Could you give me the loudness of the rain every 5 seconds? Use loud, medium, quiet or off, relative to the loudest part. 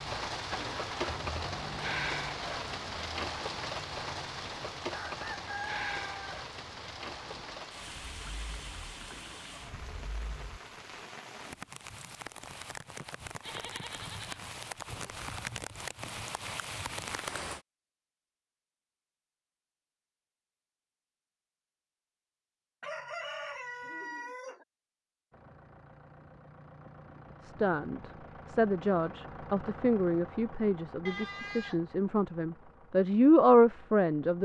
loud, medium, medium, loud, off, off, off.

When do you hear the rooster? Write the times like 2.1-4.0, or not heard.
4.9-6.5, 22.8-24.6.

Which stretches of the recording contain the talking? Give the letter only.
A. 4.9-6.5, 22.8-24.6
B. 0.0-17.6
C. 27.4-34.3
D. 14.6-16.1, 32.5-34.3
C.